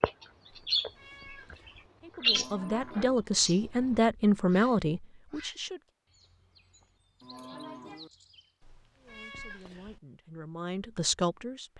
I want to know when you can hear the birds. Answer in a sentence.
The birds can be heard from 0.0 to 8.5 s.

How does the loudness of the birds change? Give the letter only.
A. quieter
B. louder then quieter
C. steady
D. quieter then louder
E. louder
A.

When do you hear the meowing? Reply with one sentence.
You can hear the meowing from 0.8 to 1.9 s and from 8.6 to 10.0 s.